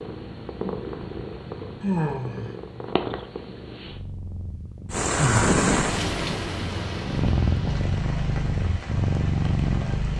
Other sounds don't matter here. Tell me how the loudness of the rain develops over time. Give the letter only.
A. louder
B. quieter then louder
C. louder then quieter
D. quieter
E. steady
D.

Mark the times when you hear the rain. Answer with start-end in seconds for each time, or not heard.
4.9-10.1.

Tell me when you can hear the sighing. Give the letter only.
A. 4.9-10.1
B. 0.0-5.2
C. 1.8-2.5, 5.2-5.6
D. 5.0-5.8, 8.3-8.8
C.